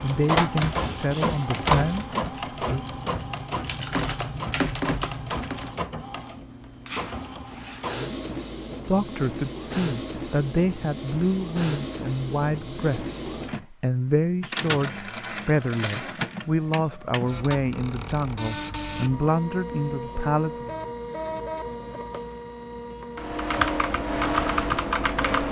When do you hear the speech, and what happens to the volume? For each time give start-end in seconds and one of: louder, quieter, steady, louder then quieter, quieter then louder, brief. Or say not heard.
0.0-2.8 brief
8.8-20.8 steady.